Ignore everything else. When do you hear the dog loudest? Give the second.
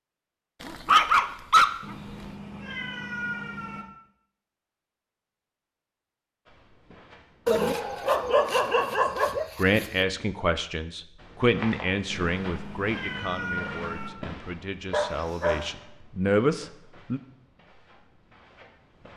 1 s.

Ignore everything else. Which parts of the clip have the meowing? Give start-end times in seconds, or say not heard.
1.8-3.9, 12.1-14.1.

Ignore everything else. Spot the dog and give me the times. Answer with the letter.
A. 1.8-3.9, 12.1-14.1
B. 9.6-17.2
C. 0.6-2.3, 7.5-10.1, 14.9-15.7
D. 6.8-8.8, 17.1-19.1
C.